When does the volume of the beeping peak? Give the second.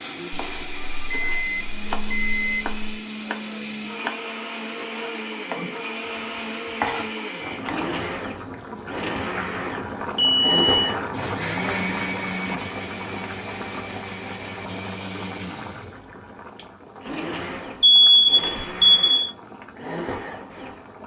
18 s.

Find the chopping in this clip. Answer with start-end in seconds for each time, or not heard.
0.2-7.8.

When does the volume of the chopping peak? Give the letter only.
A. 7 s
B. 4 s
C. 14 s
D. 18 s
A.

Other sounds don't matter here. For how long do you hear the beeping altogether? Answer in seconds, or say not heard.
5 s.